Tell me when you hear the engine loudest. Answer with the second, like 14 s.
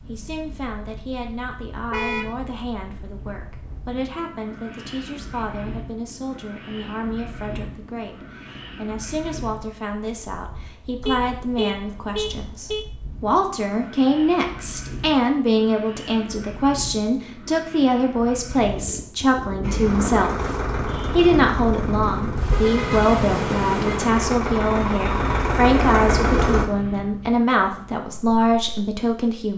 26 s.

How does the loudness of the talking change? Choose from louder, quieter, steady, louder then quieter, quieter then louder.
louder.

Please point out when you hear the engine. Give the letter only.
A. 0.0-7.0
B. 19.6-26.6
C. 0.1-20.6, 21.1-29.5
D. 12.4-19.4
B.